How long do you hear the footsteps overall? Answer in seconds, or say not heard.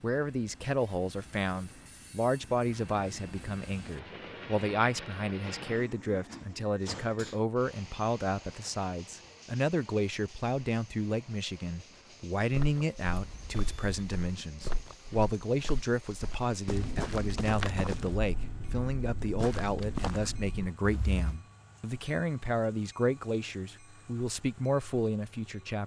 9 s.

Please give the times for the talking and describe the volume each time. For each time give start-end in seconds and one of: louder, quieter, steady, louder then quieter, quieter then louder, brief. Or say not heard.
0.0-25.8 steady.